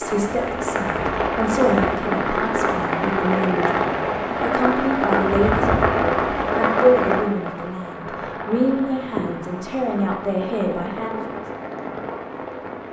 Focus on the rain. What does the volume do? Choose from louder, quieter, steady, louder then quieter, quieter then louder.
quieter.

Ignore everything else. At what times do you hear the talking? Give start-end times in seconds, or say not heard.
0.0-11.3.